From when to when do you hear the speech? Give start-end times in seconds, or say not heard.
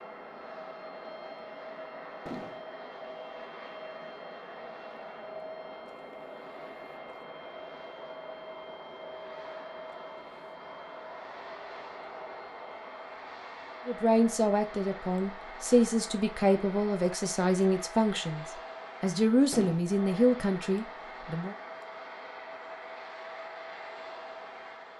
13.8-21.6.